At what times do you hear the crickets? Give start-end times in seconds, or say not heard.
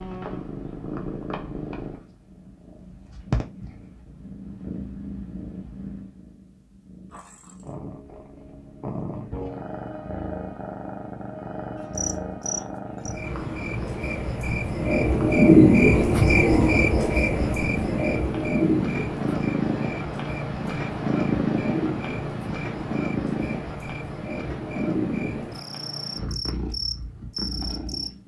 11.8-28.1.